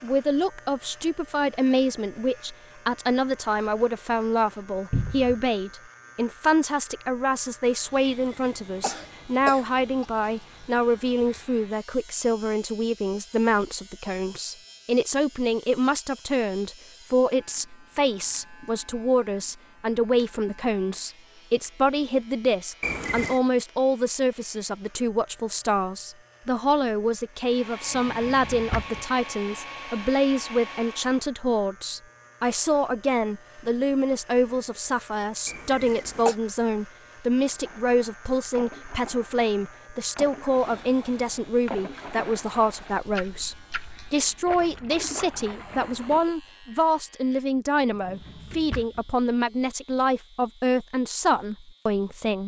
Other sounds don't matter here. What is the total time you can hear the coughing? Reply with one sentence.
The coughing can be heard for 3 seconds in total.